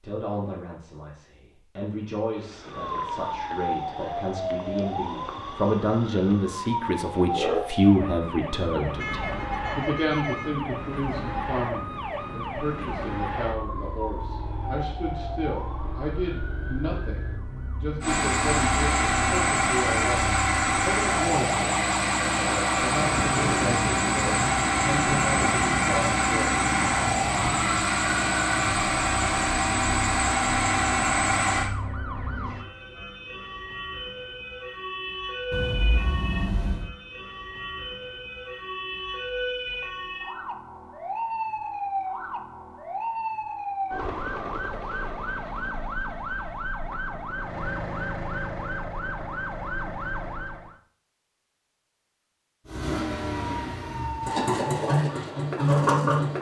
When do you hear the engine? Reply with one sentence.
You can hear the engine from 18.0 to 31.7 s and from 52.6 to 56.3 s.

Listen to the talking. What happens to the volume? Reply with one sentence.
The loudness of the talking goes up, then down.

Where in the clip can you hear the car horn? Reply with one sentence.
The car horn can be heard from 8.9 to 10.5 s and from 35.5 to 36.9 s.